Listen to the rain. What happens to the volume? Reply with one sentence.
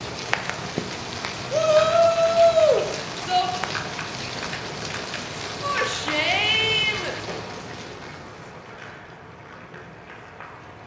The volume of the rain goes down.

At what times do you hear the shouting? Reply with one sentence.
The shouting can be heard from 1.5 to 3.5 s and from 5.6 to 7.2 s.